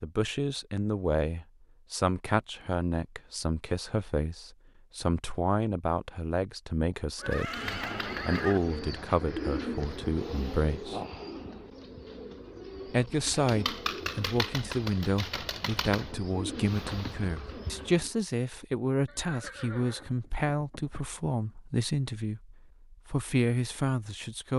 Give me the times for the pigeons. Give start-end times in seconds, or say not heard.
7.5-18.1.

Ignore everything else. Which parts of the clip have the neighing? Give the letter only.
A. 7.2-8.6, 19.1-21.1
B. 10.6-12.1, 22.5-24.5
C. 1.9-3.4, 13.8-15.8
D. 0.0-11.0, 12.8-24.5
A.